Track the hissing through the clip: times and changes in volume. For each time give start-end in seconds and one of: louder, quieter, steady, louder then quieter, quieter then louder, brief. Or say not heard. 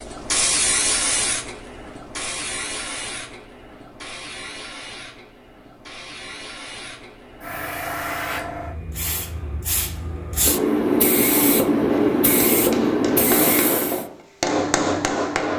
0.0-14.1 quieter then louder.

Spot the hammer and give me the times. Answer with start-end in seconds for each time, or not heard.
11.8-15.5.